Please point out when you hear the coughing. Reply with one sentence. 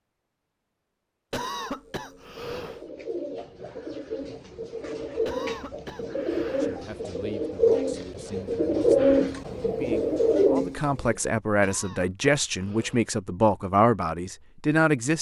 You can hear the coughing from 1.3 to 2.9 s, from 5.2 to 6.8 s and from 11.6 to 13.1 s.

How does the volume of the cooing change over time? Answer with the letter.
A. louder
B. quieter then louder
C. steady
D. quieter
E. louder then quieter
A.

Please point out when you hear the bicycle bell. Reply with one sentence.
You can't hear the bicycle bell here.